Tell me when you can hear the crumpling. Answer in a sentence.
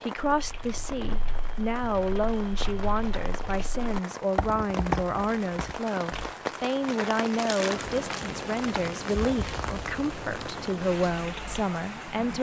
You can hear the crumpling from 7.3 to 8.2 s.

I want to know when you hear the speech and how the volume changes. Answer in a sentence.
The speech can be heard from 0.0 to 12.3 s, at a steady volume.